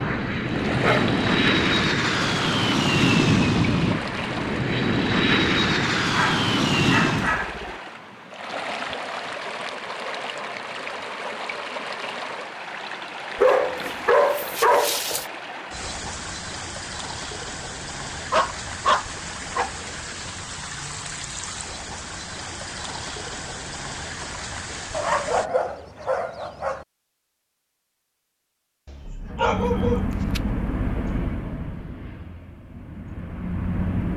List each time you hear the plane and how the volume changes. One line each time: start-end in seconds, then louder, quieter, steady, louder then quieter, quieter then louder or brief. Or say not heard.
0.0-7.5 steady
29.2-34.1 quieter then louder.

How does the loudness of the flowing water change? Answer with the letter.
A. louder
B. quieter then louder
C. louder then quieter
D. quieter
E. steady
E.